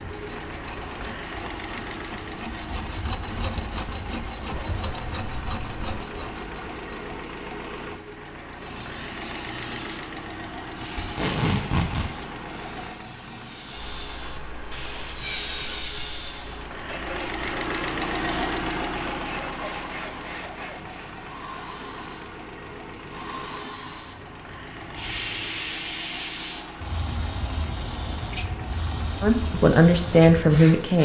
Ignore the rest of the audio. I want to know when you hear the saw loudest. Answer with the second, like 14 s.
15 s.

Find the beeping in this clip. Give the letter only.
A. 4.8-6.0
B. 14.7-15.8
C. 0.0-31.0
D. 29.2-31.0
A.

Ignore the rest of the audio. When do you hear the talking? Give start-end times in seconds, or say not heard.
29.2-31.0.